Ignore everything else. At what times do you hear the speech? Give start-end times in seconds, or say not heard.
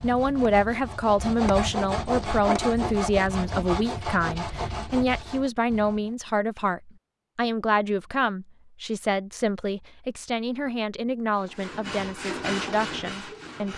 0.0-13.7.